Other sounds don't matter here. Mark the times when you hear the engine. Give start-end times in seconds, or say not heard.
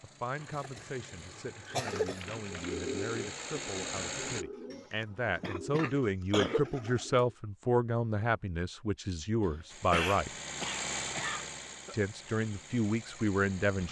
0.0-4.5, 9.7-13.8.